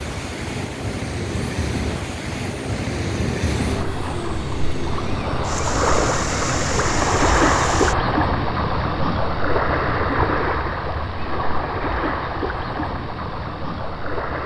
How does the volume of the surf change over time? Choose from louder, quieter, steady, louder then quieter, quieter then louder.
louder then quieter.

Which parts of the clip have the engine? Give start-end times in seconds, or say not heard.
0.0-8.0.